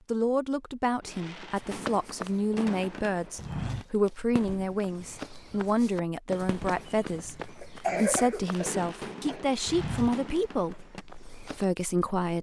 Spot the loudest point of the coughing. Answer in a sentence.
The loudest moment of the coughing is at 8 seconds.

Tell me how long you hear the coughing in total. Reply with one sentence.
The coughing can be heard for 2 seconds in total.